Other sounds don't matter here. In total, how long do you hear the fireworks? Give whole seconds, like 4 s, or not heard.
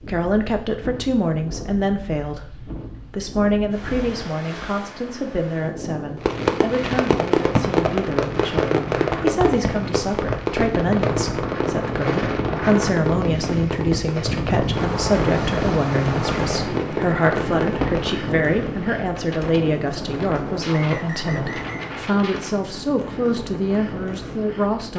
12 s.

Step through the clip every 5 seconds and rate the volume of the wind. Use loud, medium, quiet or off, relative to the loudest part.
medium, medium, loud, loud, medium.